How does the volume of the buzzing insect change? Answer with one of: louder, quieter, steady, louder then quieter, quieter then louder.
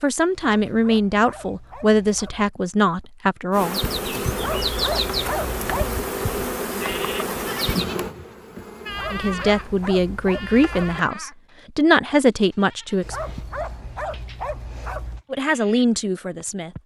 quieter.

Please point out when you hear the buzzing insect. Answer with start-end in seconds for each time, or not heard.
3.5-11.1.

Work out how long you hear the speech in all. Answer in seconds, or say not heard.
9 s.